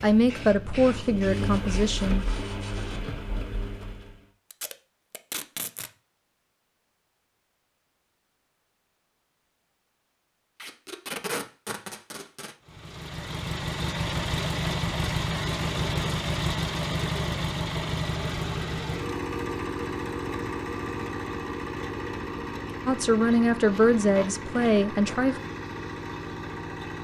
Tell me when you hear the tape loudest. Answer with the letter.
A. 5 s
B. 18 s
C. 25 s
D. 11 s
D.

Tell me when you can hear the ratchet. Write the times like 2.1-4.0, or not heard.
not heard.